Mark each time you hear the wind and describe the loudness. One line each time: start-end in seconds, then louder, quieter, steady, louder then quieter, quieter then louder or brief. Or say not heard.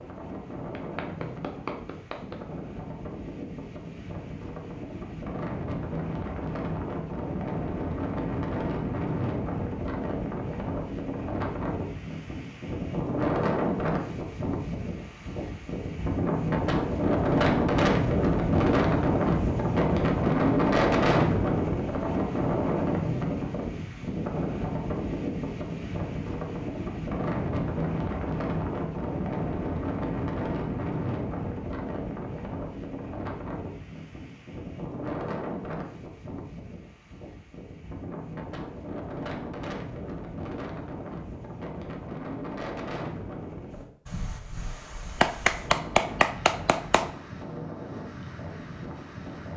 0.0-49.5 louder then quieter.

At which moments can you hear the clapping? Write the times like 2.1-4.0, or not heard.
0.8-2.5, 45.1-47.1.